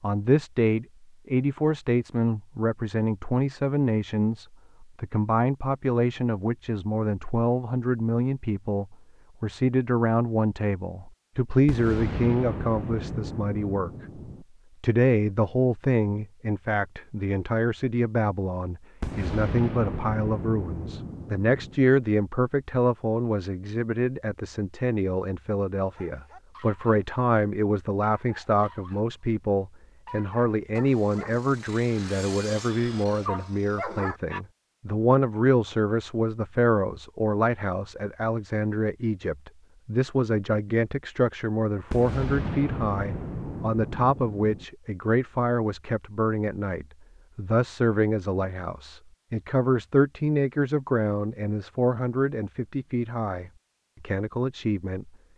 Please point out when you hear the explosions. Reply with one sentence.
The explosions can be heard from 11.7 to 14.4 s, from 19.0 to 21.8 s and from 41.9 to 44.6 s.